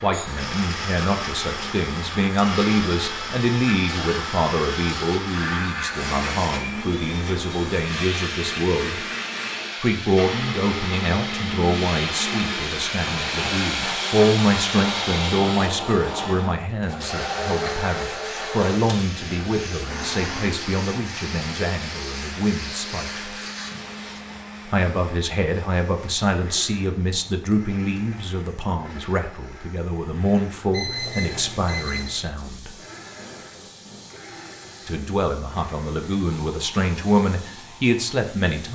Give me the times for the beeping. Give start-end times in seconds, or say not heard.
30.7-32.2.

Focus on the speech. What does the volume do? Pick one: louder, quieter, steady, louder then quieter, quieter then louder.
steady.